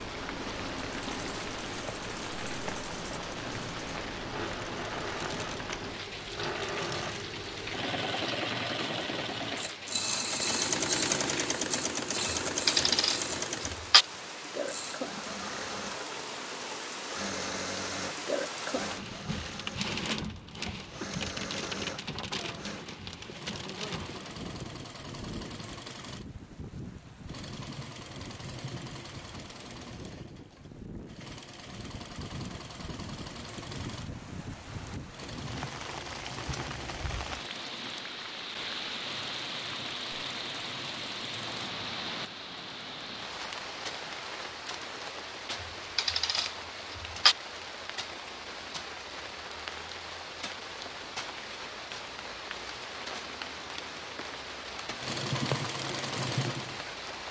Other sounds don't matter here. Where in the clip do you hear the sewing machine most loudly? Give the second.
11 s.